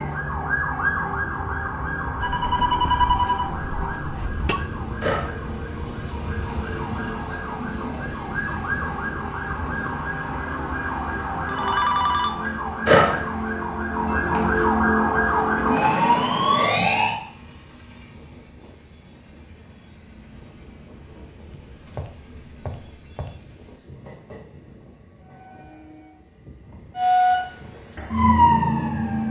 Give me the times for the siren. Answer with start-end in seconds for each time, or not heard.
0.0-17.1, 26.9-29.2.